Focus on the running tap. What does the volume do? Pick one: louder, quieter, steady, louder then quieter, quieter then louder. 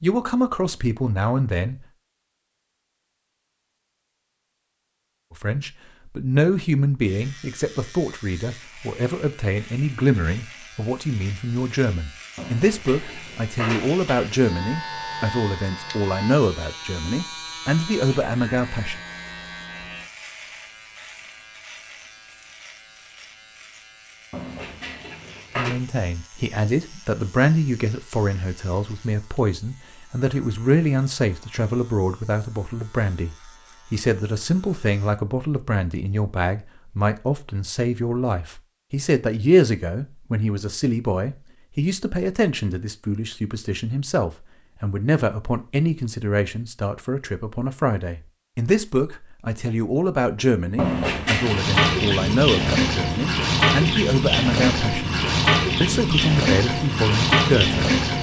steady.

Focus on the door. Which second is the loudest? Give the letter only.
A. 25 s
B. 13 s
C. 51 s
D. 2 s
C.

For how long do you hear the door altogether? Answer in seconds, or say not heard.
4 s.